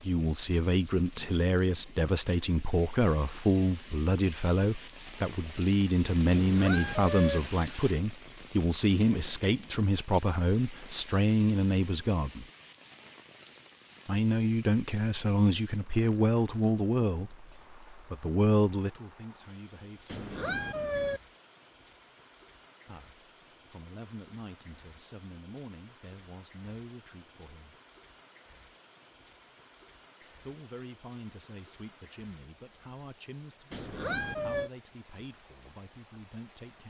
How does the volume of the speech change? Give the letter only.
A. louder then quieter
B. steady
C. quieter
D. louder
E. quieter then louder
C.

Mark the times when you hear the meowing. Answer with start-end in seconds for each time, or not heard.
6.3-7.4, 20.1-21.1, 33.7-34.6.